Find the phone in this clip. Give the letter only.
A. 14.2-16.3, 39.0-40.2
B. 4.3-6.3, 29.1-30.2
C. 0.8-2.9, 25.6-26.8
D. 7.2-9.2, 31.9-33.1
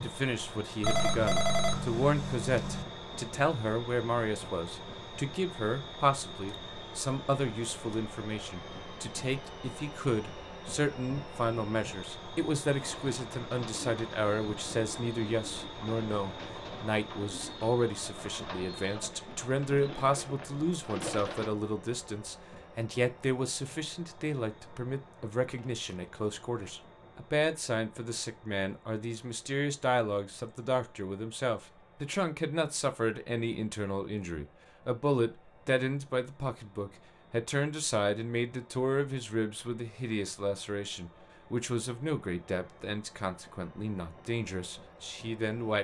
C.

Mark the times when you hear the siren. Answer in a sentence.
The siren can't be heard in this clip.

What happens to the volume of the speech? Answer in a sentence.
The loudness of the speech stays about the same.